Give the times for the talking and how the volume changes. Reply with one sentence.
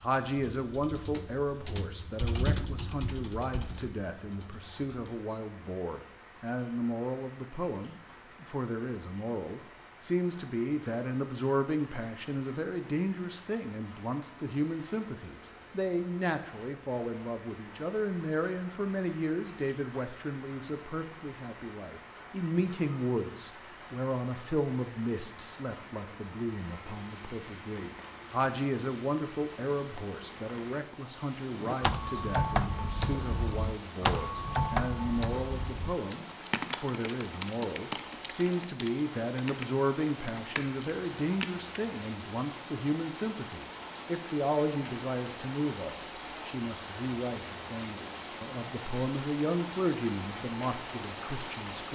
You can hear the talking from 0.0 to 51.9 s, at a steady volume.